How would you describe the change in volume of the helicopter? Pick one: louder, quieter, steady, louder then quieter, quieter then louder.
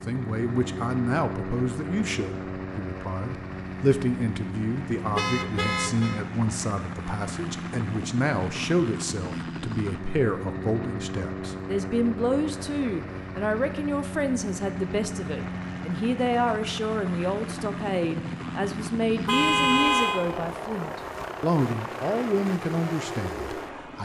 steady.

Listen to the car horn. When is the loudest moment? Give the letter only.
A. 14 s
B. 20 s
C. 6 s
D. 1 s
B.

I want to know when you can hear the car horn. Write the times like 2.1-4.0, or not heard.
5.1-6.2, 19.2-20.2.